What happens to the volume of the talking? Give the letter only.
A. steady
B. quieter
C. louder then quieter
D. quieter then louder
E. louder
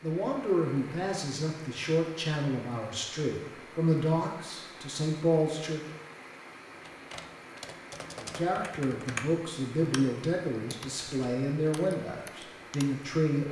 A.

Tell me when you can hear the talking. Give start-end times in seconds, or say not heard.
0.0-5.8, 8.2-13.4.